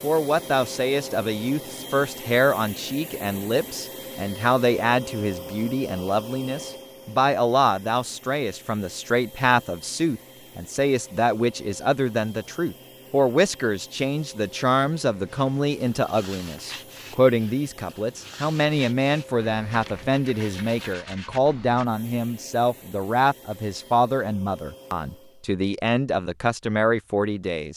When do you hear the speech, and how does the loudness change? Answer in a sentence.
You can hear the speech from 0.0 to 27.7 s, at a steady volume.